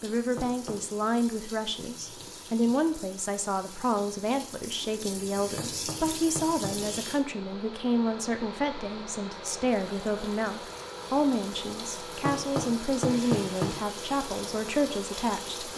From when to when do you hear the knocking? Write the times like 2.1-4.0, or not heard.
0.3-0.8, 5.5-6.8, 12.2-13.8.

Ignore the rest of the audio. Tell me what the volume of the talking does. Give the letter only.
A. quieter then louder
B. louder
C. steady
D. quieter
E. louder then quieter
C.